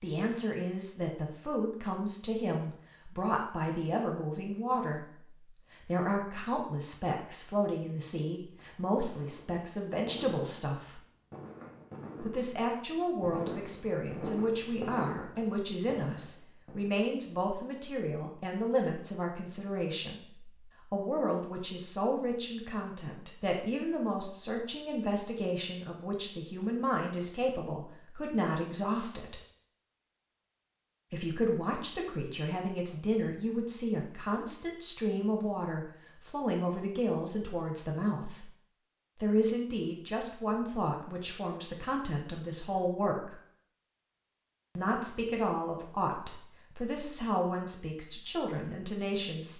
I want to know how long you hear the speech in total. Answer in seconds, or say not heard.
44 s.